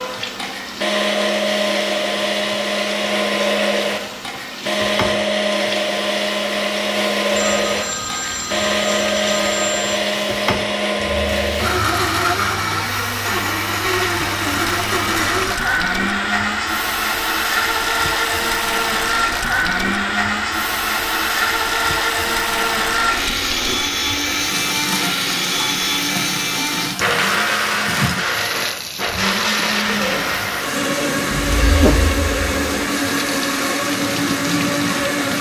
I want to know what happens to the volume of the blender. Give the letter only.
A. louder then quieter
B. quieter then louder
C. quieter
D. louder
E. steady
E.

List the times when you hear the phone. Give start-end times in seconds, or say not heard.
7.3-10.1, 31.4-32.6.